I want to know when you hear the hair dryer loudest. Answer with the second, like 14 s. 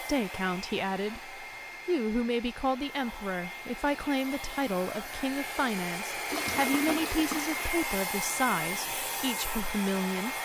8 s.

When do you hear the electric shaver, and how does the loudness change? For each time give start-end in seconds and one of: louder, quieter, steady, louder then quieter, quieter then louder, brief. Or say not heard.
not heard.